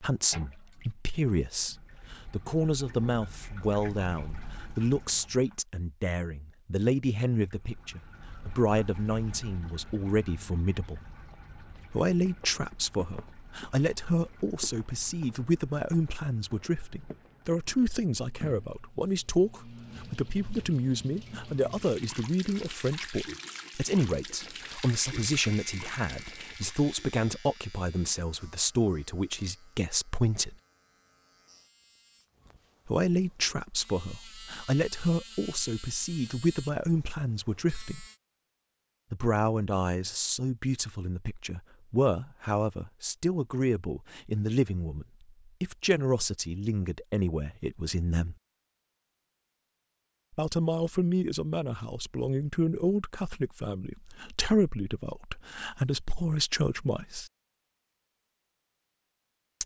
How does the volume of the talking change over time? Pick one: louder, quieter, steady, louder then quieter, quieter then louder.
steady.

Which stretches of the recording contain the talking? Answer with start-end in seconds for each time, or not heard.
0.0-11.0, 11.9-30.6, 32.9-38.0, 39.1-48.4, 50.4-57.3.